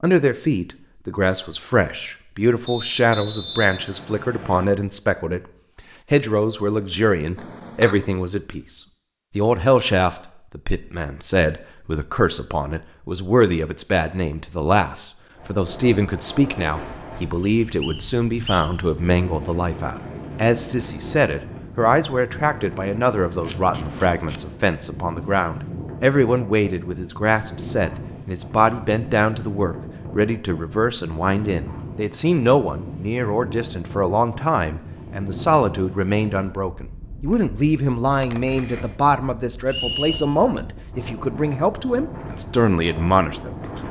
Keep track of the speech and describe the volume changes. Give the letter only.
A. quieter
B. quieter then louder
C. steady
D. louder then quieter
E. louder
C.